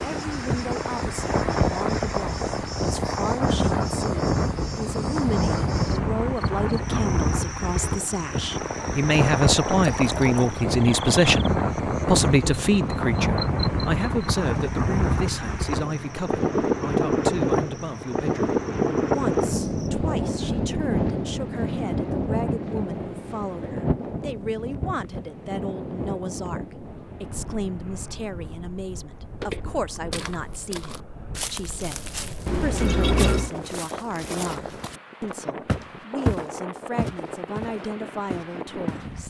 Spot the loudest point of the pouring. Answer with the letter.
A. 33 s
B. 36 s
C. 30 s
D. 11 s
A.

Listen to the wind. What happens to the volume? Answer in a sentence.
The volume of the wind goes down.